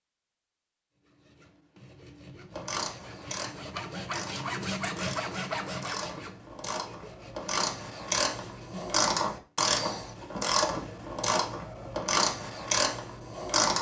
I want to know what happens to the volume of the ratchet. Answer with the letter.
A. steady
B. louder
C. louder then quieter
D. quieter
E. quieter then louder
B.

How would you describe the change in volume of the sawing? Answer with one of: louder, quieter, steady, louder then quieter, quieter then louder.
louder then quieter.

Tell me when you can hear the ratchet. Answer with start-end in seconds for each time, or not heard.
2.5-13.7.